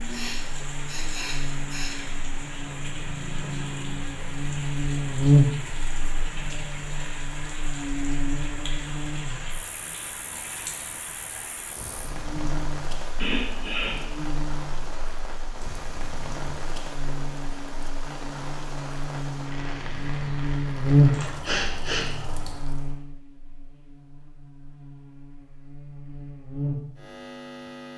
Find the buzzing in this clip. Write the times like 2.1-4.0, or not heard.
0.0-27.9.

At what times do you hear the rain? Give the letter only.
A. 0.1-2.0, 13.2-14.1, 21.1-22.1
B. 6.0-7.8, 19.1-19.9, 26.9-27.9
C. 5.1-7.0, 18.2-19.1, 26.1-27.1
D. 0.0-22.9
D.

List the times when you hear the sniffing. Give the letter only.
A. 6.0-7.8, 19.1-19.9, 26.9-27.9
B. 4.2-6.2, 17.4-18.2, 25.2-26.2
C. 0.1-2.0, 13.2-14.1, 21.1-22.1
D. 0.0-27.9
C.